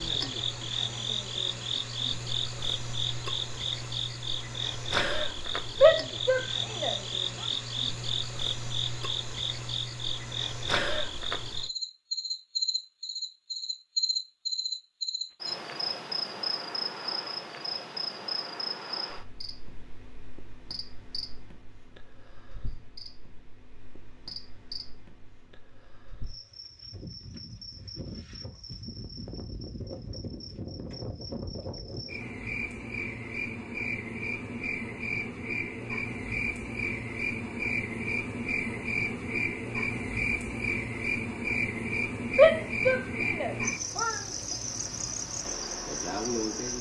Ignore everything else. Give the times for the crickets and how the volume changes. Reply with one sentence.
You can hear the crickets from 0.0 to 46.7 s, getting quieter then louder.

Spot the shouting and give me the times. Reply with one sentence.
You can hear the shouting from 5.8 to 7.0 s and from 42.4 to 44.2 s.